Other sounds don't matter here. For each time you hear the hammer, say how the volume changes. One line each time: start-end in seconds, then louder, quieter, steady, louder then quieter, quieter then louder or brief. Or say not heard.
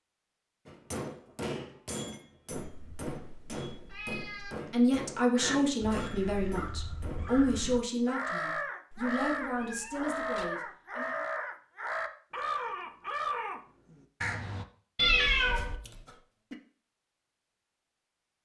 0.7-7.3 quieter.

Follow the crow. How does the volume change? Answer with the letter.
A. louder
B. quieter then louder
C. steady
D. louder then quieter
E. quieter
A.